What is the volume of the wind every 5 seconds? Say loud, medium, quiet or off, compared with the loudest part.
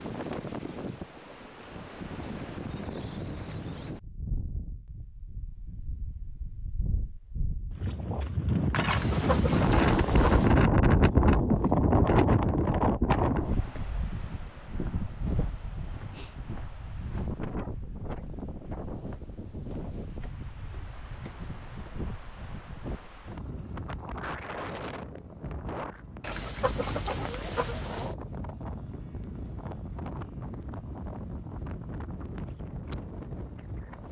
quiet, medium, loud, quiet, quiet, quiet, quiet.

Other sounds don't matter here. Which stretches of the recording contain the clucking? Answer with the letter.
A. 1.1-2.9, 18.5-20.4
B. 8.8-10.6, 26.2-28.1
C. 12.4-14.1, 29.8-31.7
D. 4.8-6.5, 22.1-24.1
B.